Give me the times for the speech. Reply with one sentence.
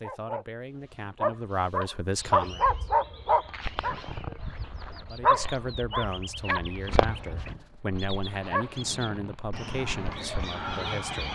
The speech can be heard from 0.0 to 2.8 s and from 5.1 to 11.3 s.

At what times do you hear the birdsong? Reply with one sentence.
The birdsong can be heard from 2.1 to 11.3 s.